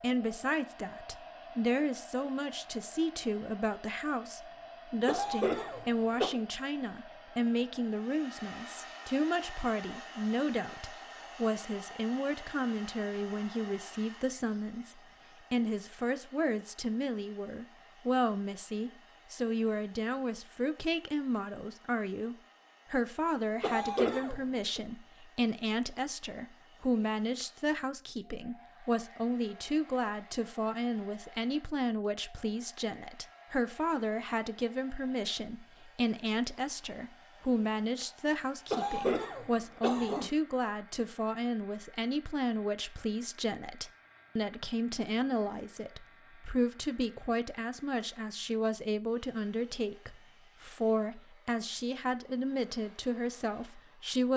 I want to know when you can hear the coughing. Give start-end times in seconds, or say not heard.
5.0-6.3, 23.6-24.8, 38.7-40.3.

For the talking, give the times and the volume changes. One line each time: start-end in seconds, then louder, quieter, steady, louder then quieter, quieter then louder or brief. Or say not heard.
0.0-54.3 steady.